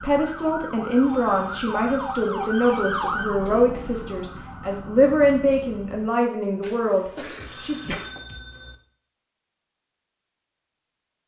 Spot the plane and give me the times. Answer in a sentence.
The plane can't be heard in this clip.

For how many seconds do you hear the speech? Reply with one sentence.
The speech can be heard for 8 seconds in total.